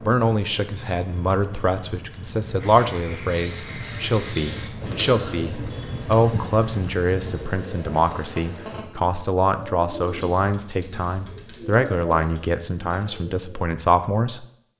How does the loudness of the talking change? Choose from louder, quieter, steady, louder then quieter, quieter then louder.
steady.